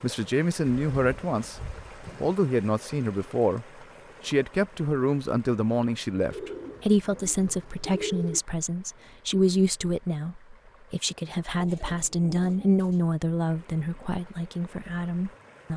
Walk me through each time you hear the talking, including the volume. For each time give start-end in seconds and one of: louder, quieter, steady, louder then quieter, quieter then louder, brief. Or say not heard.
0.0-1.6 brief
2.2-15.7 steady.